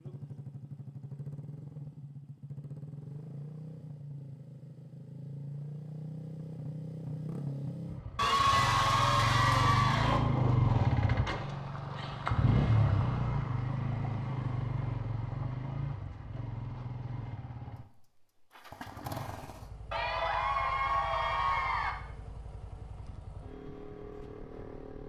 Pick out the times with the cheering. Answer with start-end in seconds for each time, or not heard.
8.2-10.2, 19.9-21.9.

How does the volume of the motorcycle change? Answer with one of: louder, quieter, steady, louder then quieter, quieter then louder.
louder then quieter.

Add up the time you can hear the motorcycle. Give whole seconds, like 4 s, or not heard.
25 s.